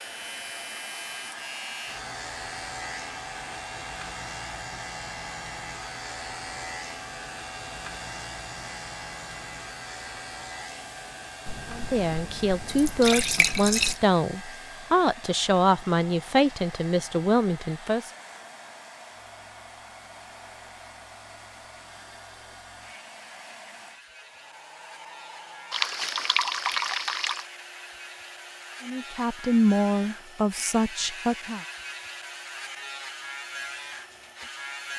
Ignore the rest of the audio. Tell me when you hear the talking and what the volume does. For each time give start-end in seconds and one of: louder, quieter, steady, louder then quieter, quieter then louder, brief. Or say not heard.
11.7-18.1 steady
28.8-31.6 brief.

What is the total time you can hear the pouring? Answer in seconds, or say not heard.
4 s.